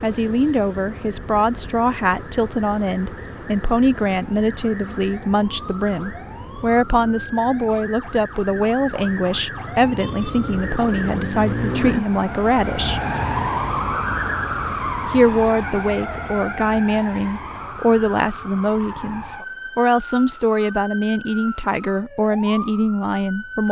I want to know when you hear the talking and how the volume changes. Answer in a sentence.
The talking can be heard from 0.0 to 13.0 s, at a steady volume; and from 14.7 to 23.6 s, at a steady volume.